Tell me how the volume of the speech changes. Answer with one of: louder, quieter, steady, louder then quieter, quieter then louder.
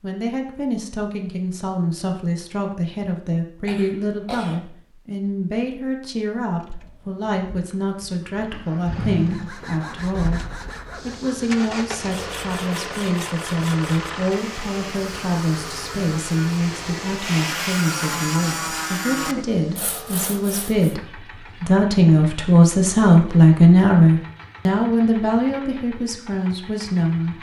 louder.